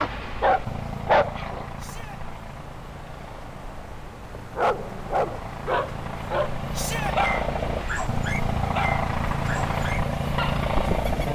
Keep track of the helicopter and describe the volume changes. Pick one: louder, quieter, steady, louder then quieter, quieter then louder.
quieter then louder.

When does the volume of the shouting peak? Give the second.
7 s.